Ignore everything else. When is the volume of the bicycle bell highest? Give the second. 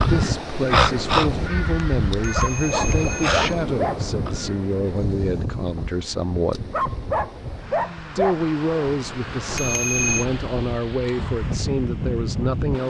10 s.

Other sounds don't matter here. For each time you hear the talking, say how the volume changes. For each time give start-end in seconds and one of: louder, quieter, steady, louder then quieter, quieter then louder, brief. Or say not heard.
0.1-6.7 steady
8.2-12.8 steady.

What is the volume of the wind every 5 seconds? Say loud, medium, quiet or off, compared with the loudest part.
loud, medium, loud.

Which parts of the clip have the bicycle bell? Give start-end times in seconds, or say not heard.
2.1-3.5, 9.4-10.2.